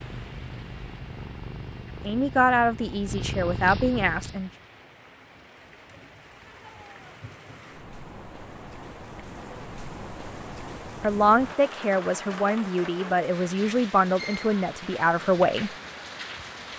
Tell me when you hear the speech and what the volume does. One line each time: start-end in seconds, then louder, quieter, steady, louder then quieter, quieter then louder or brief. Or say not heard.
2.0-4.5 brief
11.0-15.7 steady.